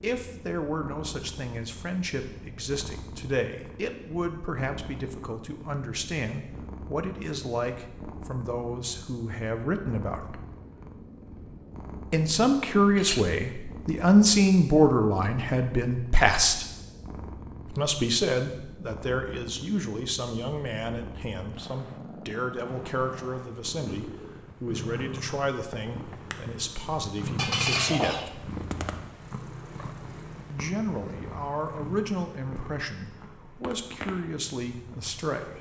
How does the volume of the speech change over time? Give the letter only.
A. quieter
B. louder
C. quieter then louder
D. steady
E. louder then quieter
E.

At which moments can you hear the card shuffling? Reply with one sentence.
You can't hear the card shuffling here.